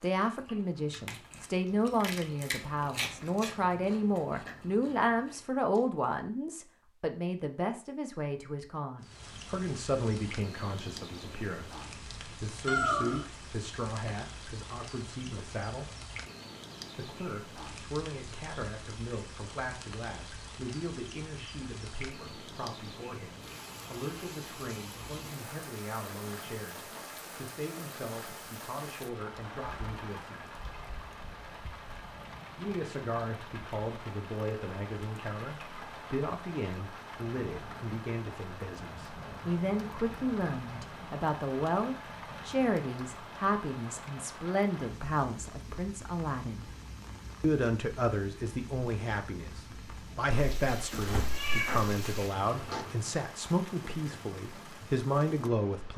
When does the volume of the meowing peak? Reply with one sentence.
The loudest moment of the meowing is at 13 seconds.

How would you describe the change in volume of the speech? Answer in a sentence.
The loudness of the speech goes down, then up.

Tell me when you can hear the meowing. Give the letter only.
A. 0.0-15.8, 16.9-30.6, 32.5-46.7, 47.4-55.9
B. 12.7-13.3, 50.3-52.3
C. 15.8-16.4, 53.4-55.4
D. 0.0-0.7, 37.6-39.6
B.